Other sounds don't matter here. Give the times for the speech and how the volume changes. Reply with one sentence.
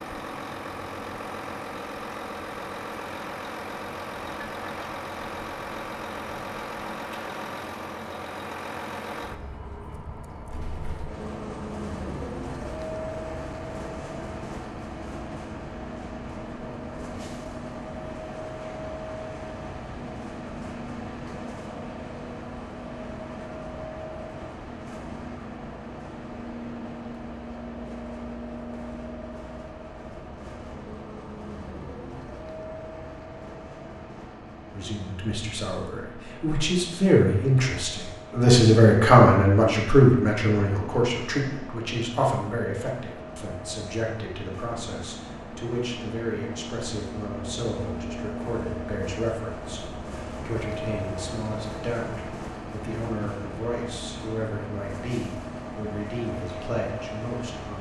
The speech can be heard from 34.7 to 57.7 s, getting quieter.